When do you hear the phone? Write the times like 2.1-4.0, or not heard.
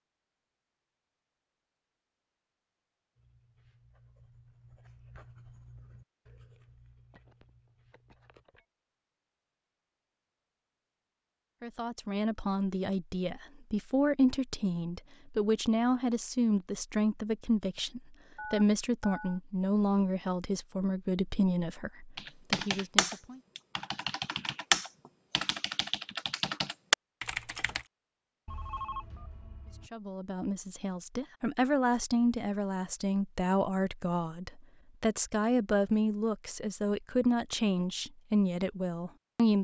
7.1-8.7, 18.4-19.4, 28.4-29.9.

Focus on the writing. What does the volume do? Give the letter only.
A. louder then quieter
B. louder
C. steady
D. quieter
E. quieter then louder
A.